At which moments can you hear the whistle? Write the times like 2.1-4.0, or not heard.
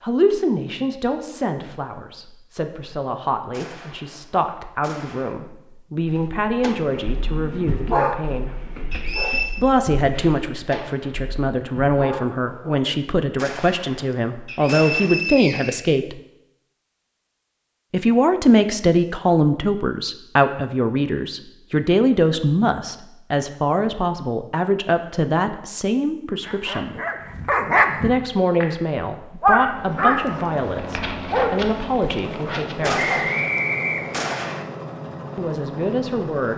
8.9-9.6, 14.4-16.0, 33.0-34.3.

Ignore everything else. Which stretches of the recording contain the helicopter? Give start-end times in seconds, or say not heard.
29.6-36.5.